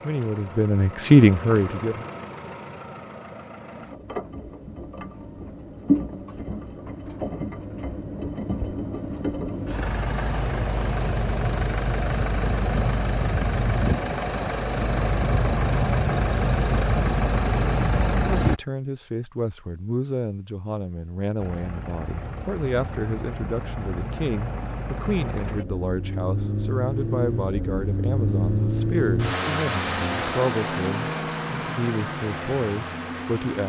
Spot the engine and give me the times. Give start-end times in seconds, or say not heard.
0.0-18.6, 21.4-33.6.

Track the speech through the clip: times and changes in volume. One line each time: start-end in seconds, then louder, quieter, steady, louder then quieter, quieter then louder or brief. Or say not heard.
0.0-2.0 brief
18.2-33.6 steady.